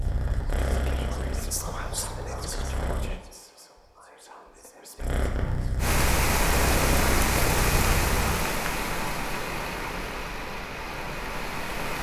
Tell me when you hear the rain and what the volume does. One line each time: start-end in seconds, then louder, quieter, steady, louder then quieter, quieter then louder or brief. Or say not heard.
5.8-11.9 quieter.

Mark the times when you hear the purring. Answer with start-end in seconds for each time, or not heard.
0.0-3.1, 5.0-8.2.